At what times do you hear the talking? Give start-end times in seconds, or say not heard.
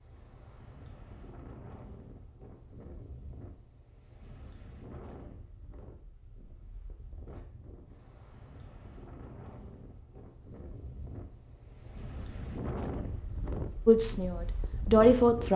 13.8-15.5.